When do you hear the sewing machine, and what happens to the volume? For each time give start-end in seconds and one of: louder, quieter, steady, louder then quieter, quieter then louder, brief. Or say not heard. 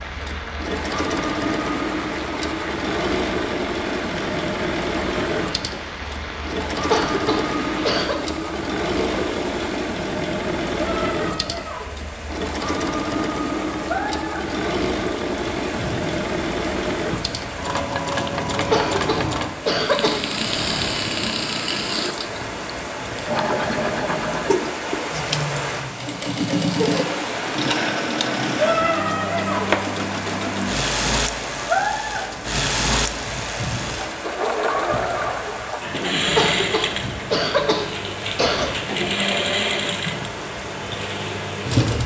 0.0-42.0 steady.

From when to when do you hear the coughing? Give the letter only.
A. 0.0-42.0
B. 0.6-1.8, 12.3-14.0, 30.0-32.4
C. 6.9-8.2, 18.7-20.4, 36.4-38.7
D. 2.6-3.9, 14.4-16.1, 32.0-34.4
C.